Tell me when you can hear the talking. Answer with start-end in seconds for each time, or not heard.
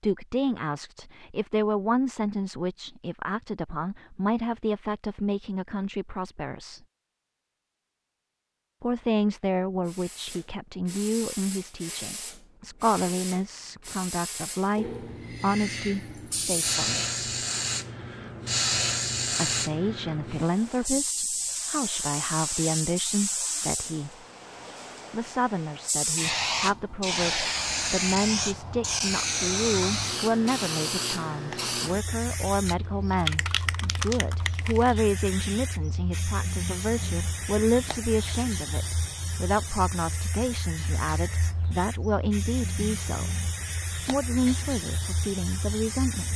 0.0-6.8, 8.8-17.1, 19.4-24.1, 25.1-43.4, 44.0-46.3.